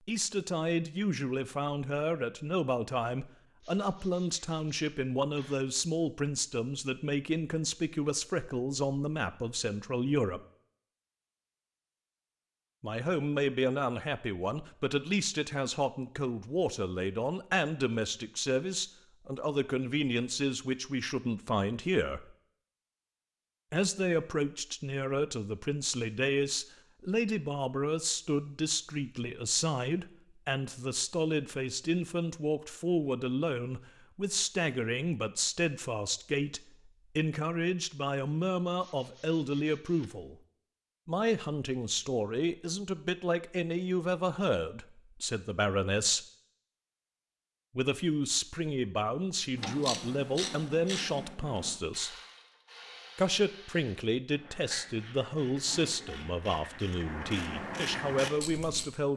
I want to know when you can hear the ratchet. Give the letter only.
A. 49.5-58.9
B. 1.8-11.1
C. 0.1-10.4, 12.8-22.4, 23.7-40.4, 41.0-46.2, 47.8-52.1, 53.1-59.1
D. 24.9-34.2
A.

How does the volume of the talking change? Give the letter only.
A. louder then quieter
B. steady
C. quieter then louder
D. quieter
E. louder
B.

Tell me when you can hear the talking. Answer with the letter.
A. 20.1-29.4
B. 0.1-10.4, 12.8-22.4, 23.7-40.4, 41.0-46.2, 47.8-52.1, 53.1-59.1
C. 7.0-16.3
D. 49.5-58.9
B.